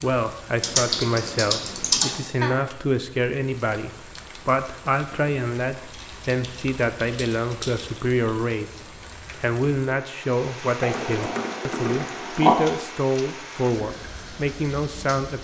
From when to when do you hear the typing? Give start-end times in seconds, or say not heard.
0.6-2.2, 5.8-8.0, 10.8-12.6.